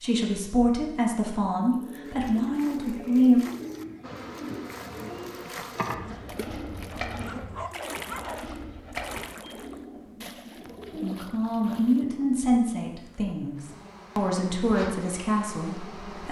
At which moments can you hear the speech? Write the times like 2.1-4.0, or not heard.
0.0-3.4, 11.0-16.2.